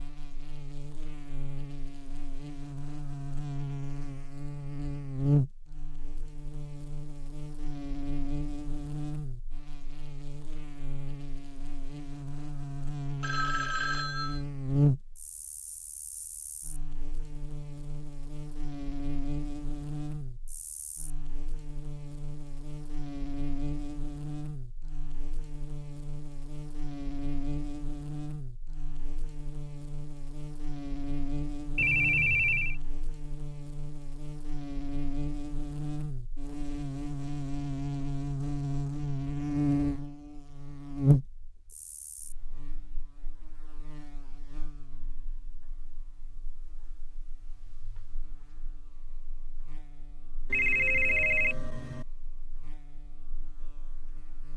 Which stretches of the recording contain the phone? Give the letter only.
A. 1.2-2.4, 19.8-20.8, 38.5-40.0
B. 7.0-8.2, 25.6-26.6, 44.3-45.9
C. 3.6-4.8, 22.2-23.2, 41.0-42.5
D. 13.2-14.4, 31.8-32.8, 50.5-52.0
D.